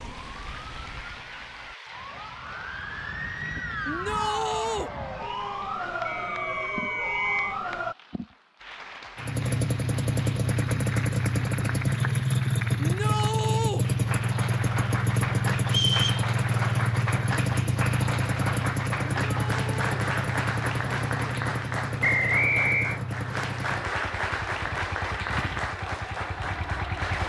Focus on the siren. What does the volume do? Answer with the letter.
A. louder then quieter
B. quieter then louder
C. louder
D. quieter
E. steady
C.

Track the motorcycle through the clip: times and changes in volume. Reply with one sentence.
You can hear the motorcycle from 9.2 to 27.2 s, getting quieter.